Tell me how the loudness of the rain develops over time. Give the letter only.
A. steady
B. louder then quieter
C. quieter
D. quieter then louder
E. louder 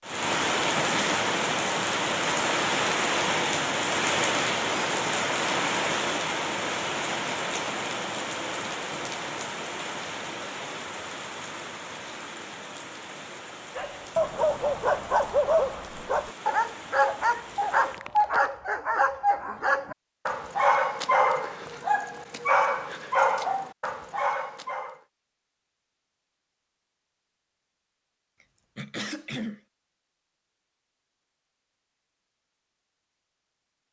C.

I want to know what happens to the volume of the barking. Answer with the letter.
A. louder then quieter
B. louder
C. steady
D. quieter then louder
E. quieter
C.